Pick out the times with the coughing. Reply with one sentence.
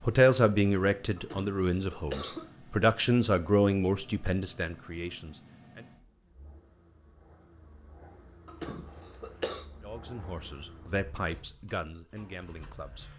You can hear the coughing from 1.1 to 2.5 s and from 8.4 to 9.7 s.